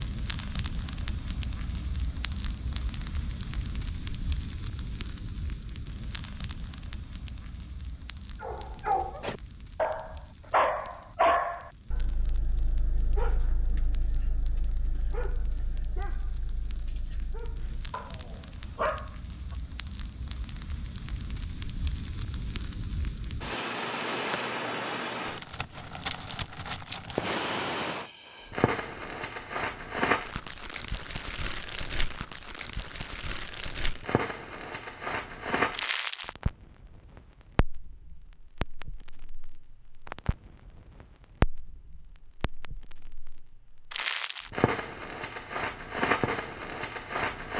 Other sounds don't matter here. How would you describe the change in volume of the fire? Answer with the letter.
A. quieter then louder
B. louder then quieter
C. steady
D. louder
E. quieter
A.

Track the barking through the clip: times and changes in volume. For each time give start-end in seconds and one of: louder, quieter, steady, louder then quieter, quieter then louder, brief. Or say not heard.
8.4-19.6 quieter then louder.